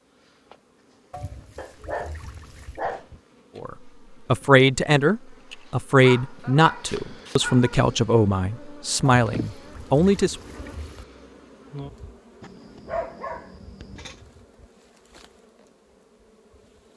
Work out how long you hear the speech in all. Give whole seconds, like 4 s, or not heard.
7 s.